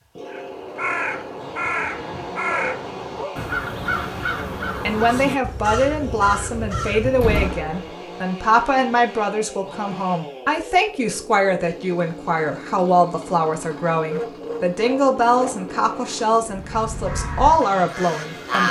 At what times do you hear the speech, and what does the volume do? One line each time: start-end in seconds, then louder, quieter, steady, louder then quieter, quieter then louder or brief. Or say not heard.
4.8-18.6 steady.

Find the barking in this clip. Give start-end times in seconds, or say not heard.
2.5-3.5, 13.9-15.7.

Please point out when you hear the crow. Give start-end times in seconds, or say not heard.
0.3-7.6, 16.4-18.6.